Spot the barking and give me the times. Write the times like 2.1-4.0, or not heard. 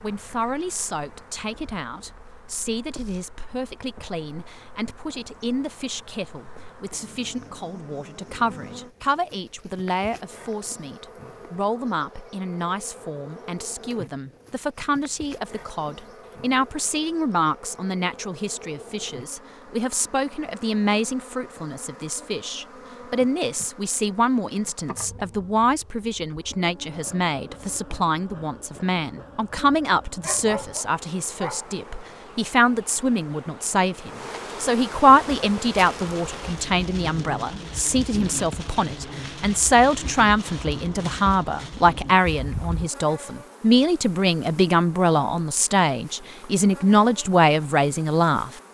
30.2-31.9.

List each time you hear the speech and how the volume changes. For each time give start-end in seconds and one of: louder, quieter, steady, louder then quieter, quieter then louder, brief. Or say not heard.
0.0-48.5 louder.